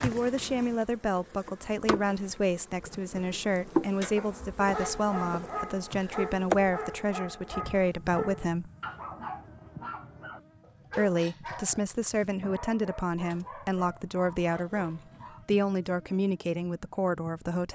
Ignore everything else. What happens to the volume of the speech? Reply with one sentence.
The volume of the speech stays about the same.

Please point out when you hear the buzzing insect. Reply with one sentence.
You can hear the buzzing insect from 0.0 to 17.7 s.